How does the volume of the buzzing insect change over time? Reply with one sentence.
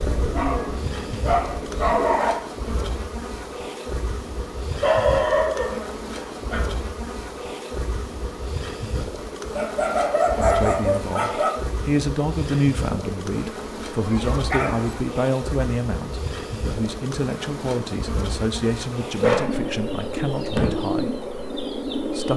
The loudness of the buzzing insect stays about the same.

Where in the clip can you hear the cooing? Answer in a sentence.
You can hear the cooing from 0.0 to 2.2 s and from 19.3 to 22.3 s.